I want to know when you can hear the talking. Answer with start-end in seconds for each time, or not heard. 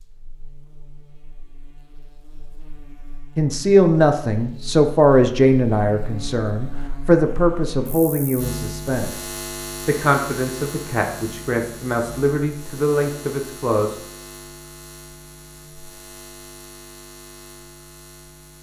3.4-14.0.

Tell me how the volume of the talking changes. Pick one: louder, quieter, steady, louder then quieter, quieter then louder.
quieter.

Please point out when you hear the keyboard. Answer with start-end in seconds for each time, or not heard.
not heard.